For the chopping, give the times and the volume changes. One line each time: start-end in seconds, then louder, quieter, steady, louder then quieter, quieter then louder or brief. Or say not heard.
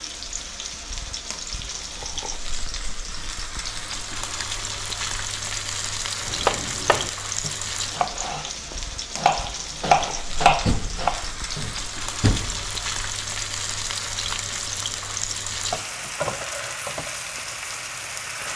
6.2-11.7 louder.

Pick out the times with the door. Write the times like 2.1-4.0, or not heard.
10.7-12.8.